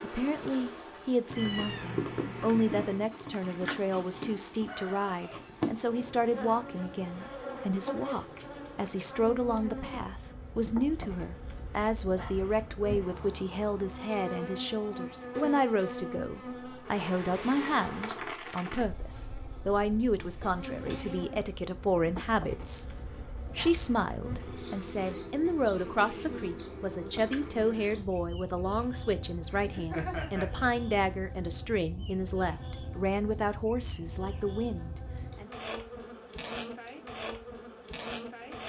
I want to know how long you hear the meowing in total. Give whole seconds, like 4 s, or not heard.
4 s.